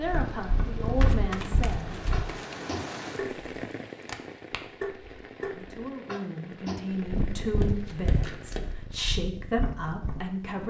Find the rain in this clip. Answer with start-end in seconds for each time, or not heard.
0.0-9.1.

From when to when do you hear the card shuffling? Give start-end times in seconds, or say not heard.
1.0-2.5, 7.7-8.6.